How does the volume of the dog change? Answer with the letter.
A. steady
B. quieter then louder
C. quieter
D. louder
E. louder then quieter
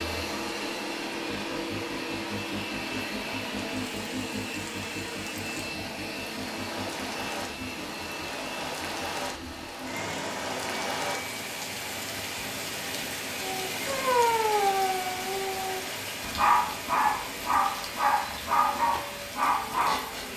B.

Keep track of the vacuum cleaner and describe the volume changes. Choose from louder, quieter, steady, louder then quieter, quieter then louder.
quieter.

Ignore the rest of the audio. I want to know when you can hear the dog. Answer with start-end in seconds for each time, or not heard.
13.4-20.3.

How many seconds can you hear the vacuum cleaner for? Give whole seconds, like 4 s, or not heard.
20 s.